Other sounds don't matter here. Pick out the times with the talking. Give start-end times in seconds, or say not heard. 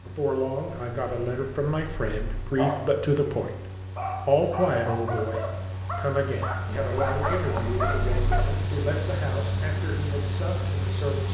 0.0-3.5, 4.2-11.2.